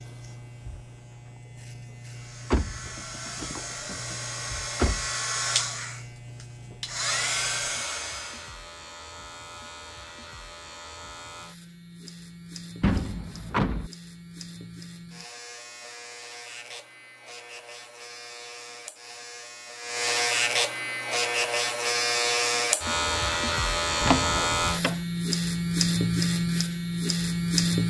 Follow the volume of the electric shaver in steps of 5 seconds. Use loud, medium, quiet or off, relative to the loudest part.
quiet, quiet, quiet, quiet, loud, loud.